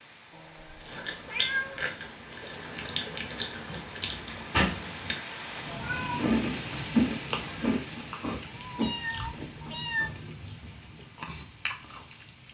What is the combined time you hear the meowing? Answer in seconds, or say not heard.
4 s.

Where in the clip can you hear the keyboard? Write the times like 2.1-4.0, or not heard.
not heard.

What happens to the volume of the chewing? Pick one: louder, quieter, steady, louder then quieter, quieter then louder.
louder then quieter.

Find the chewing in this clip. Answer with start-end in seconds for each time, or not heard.
0.8-12.2.